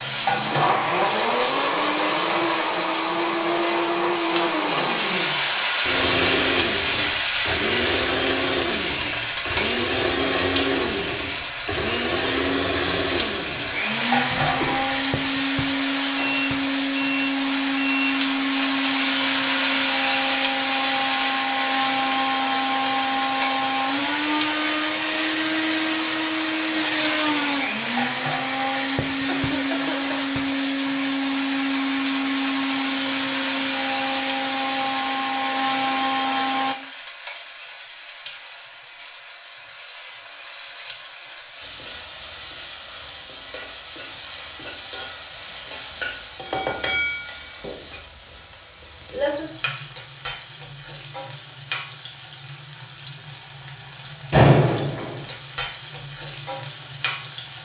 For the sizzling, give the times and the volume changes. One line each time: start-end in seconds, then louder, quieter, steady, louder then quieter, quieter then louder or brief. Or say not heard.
0.0-57.6 quieter then louder.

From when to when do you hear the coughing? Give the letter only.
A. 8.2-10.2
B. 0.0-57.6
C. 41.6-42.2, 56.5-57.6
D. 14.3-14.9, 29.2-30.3
D.